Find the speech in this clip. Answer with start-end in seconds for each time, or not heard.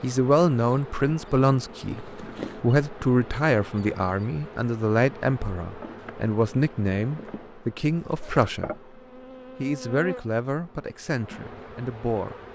0.0-8.9, 9.6-12.3.